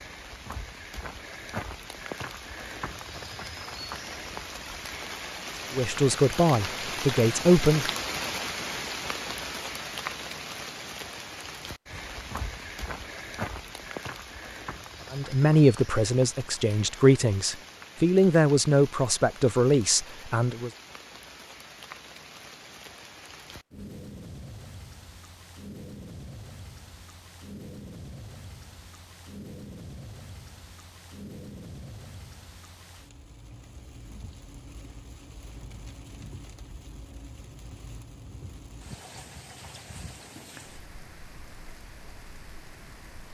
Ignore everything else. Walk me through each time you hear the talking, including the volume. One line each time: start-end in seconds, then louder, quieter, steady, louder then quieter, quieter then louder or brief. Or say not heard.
5.7-7.9 brief
15.1-20.7 steady.